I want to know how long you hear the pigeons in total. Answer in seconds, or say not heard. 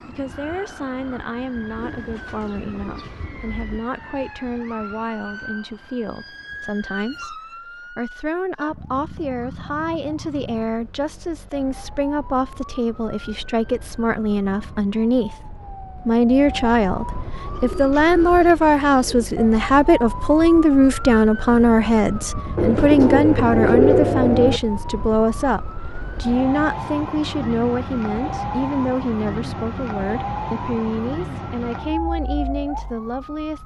6 s.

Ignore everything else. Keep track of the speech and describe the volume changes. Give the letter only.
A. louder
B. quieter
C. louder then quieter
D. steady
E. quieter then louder
C.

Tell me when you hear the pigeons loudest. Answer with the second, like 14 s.
24 s.